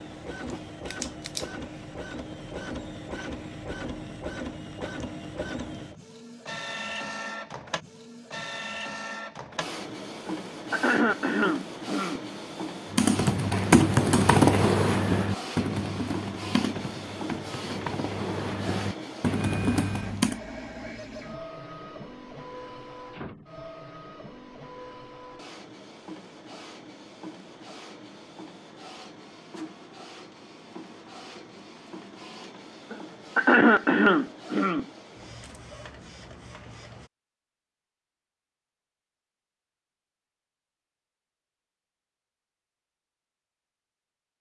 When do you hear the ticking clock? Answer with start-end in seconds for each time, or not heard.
not heard.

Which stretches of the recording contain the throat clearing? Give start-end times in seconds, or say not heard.
10.2-12.2, 32.9-34.9.